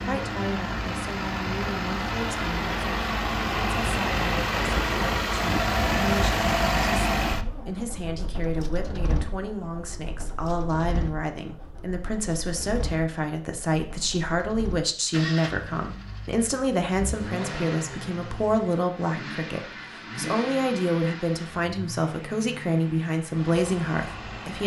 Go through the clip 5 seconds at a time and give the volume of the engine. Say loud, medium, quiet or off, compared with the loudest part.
loud, loud, quiet, medium, medium.